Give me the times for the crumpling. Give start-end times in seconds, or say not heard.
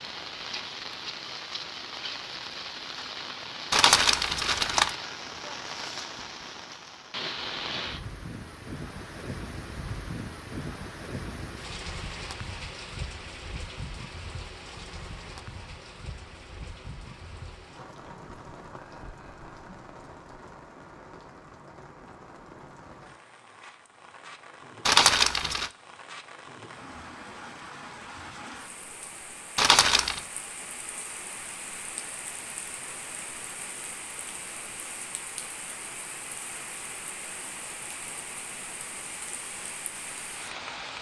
3.7-5.0, 24.9-25.7, 29.6-30.2.